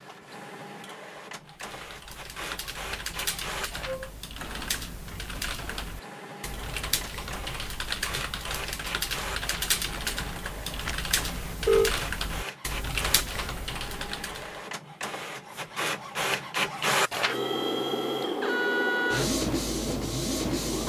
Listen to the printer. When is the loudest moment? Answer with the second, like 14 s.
19 s.